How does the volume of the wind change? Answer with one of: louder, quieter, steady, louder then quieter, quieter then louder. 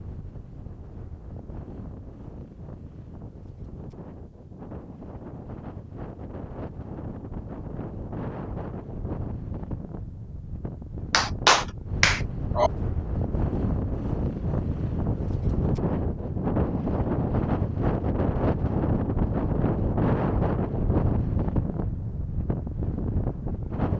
louder.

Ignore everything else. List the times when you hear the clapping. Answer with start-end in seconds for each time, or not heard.
11.1-12.7.